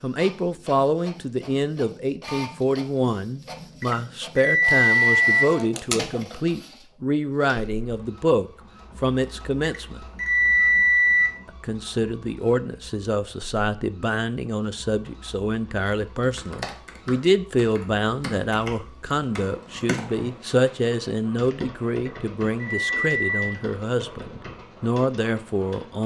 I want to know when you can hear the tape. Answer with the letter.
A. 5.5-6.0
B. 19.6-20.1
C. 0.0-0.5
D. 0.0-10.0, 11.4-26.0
A.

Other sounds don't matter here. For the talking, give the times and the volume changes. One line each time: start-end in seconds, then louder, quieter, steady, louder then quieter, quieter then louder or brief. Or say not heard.
0.0-10.0 steady
11.4-26.0 steady.